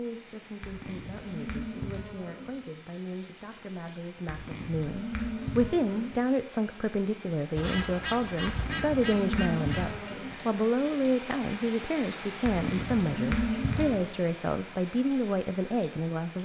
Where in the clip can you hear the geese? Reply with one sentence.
You can hear the geese from 7.5 to 10.2 s.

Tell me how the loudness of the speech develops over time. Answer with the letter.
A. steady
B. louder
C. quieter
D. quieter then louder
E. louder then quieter
B.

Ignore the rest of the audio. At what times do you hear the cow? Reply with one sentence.
The cow can be heard from 0.6 to 2.5 s, from 4.2 to 6.2 s, from 8.4 to 10.3 s and from 12.4 to 14.1 s.